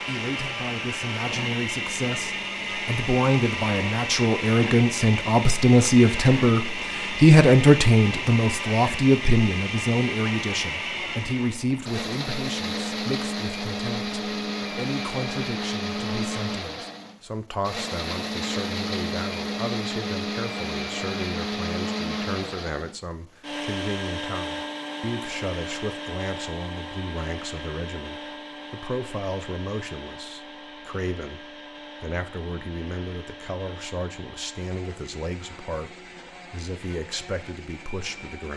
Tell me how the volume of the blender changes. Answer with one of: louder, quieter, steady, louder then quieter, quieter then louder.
quieter.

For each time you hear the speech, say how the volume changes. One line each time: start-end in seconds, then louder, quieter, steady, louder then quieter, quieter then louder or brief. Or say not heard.
0.1-38.5 quieter.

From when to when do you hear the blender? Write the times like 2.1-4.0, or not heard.
0.0-38.5.